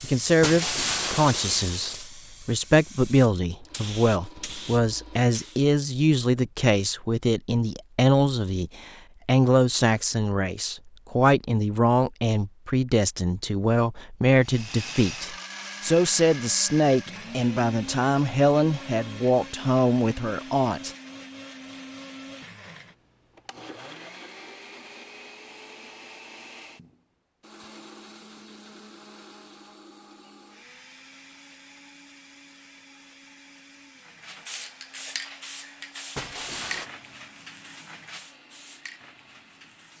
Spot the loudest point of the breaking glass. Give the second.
1 s.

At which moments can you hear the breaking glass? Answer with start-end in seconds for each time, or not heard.
0.4-2.1, 36.1-36.9.